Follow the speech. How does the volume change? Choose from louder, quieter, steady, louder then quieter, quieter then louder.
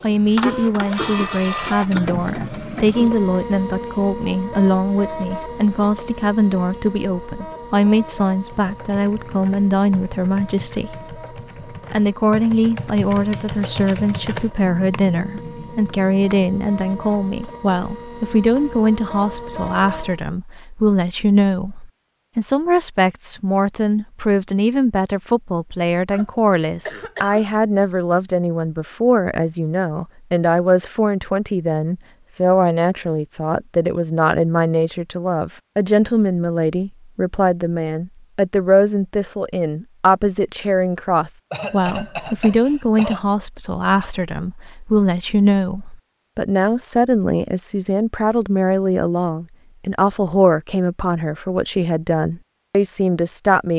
steady.